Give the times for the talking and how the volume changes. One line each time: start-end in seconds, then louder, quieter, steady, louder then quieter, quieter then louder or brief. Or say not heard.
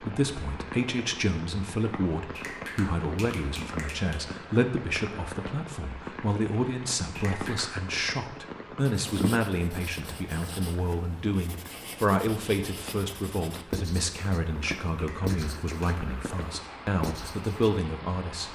0.0-18.4 steady.